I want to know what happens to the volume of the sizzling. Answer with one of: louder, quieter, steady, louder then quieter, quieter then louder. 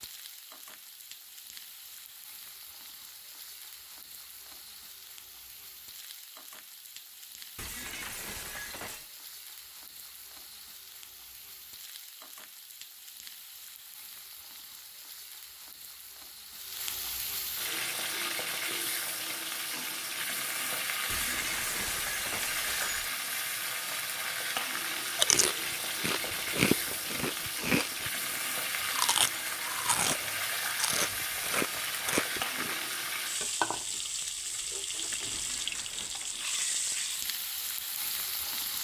louder.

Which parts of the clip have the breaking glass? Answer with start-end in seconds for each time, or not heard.
7.5-9.1, 21.1-23.1, 35.3-36.1.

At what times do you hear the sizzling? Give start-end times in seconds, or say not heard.
0.0-38.7.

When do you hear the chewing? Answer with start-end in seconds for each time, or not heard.
25.1-32.8.